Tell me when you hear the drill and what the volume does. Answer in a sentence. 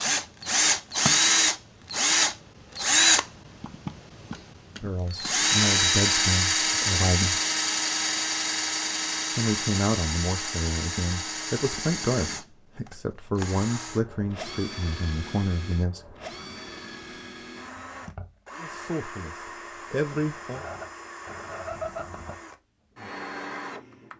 You can hear the drill from 0.0 to 24.1 s, getting quieter.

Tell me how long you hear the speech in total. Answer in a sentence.
The speech can be heard for 11 seconds in total.